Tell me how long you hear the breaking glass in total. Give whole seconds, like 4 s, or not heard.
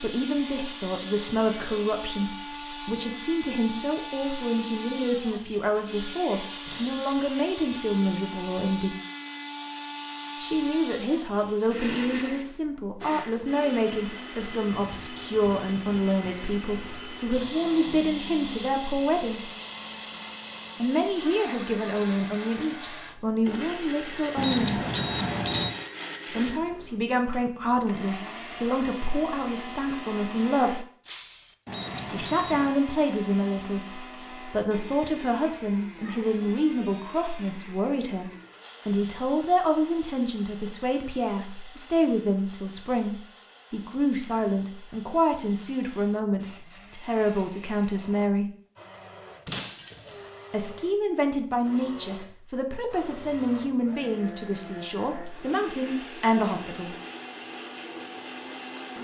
2 s.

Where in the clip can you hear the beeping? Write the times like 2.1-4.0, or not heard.
24.4-25.8, 31.6-32.8.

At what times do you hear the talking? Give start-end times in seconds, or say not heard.
0.0-8.9, 10.3-19.5, 20.8-24.8, 26.2-30.9, 32.1-48.5, 50.5-56.9.